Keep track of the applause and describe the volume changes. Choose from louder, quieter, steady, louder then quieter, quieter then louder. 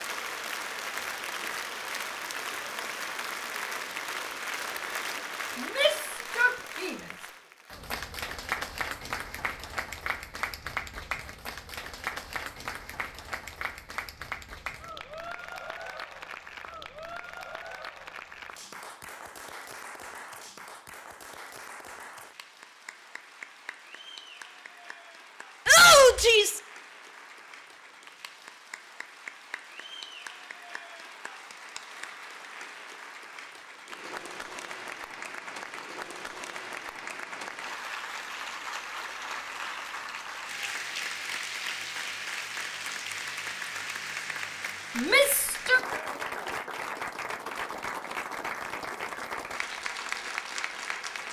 quieter then louder.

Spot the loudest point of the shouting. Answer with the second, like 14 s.
26 s.